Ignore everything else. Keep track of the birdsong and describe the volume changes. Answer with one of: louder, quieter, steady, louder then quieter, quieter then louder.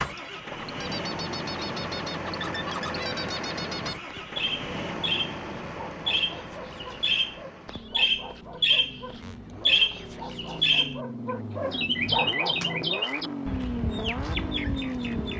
louder then quieter.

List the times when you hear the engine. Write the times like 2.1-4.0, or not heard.
0.0-15.3.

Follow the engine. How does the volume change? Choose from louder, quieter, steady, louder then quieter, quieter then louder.
quieter then louder.